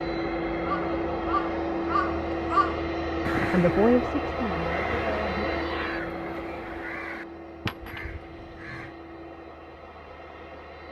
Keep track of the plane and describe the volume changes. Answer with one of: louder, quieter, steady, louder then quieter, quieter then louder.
quieter.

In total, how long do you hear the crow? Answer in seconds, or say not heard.
8 s.